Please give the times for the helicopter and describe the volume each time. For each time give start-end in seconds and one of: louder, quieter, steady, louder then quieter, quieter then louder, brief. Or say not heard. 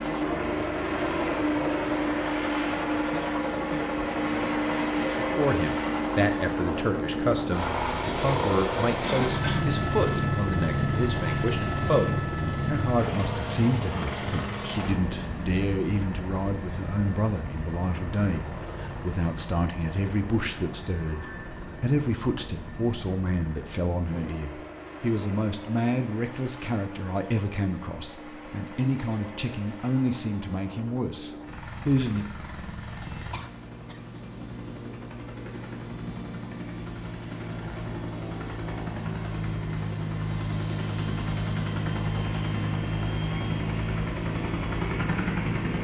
0.0-45.7 quieter then louder.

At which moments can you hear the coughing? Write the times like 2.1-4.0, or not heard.
9.0-9.8, 33.3-34.0.